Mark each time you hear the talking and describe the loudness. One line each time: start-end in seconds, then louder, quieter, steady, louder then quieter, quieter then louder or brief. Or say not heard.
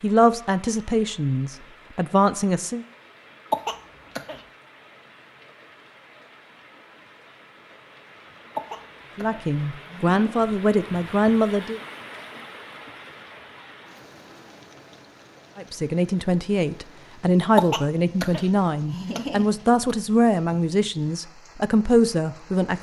0.0-2.9 brief
9.2-11.8 brief
15.6-22.7 steady.